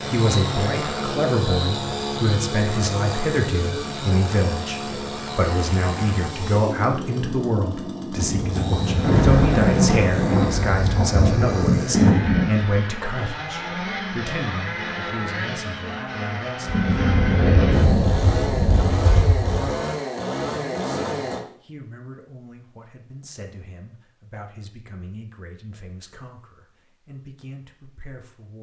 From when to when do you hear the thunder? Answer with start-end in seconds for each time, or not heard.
8.2-12.5, 16.6-19.6.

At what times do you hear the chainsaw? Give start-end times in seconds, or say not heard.
0.0-21.4.